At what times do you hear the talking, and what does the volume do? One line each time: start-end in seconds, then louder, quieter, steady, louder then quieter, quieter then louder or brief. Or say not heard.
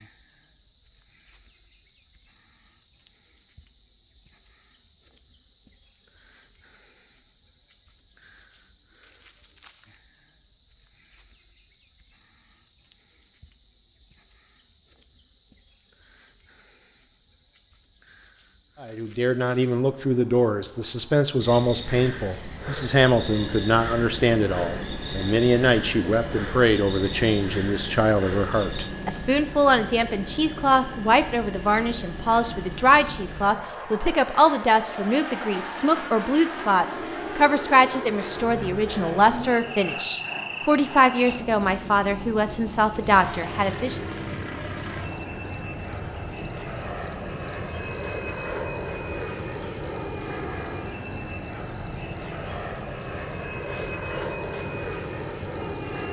18.8-44.0 steady.